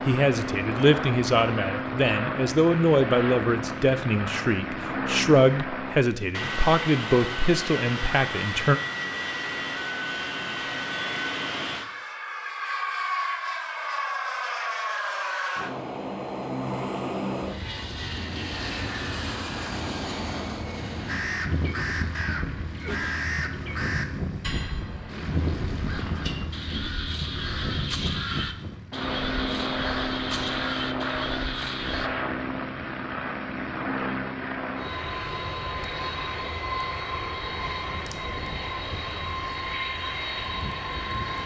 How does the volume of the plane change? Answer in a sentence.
The volume of the plane stays about the same.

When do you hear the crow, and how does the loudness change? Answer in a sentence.
You can hear the crow from 21.1 to 32.1 s, at a steady volume.